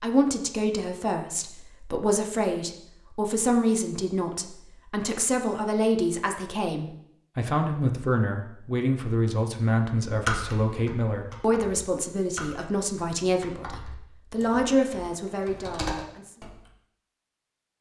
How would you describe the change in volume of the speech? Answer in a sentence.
The volume of the speech stays about the same.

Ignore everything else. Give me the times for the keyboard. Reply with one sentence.
The keyboard can be heard from 10.1 to 16.6 s.